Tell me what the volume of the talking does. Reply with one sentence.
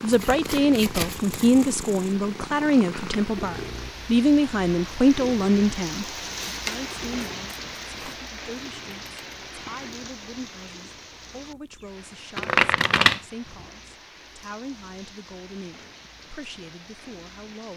The loudness of the talking goes down.